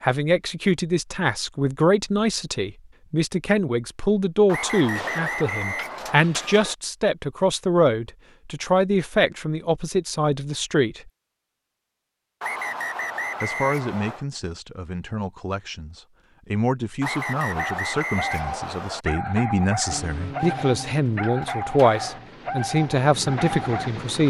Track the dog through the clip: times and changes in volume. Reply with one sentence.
You can hear the dog from 17.6 to 23.9 s, at a steady volume.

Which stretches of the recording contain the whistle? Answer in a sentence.
You can hear the whistle from 4.5 to 6.2 s, from 12.4 to 14.2 s and from 17.0 to 19.1 s.